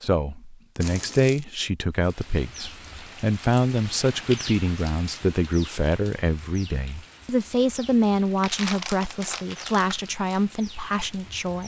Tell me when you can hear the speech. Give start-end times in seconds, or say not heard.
0.0-11.6.